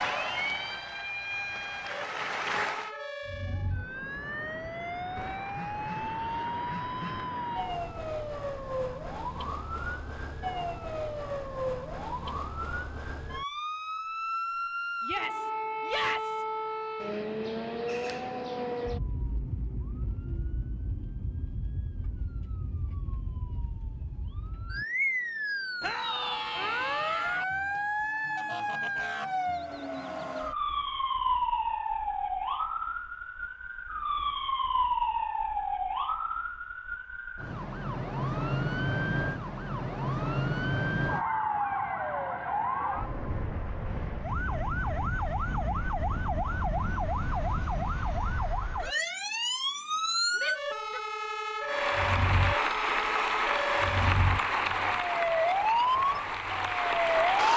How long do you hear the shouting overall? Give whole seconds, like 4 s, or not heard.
4 s.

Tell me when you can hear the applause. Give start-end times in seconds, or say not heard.
0.0-3.0, 51.6-57.5.